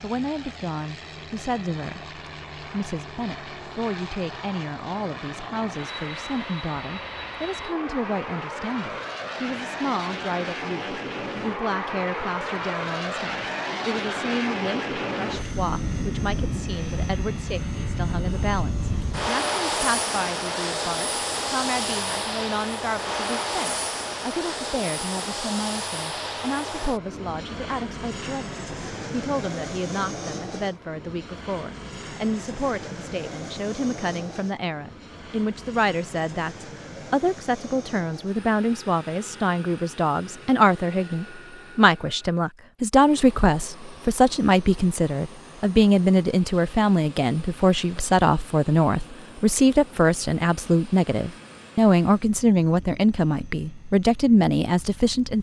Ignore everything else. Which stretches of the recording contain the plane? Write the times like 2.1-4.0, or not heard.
0.0-55.3.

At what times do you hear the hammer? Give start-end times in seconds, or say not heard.
not heard.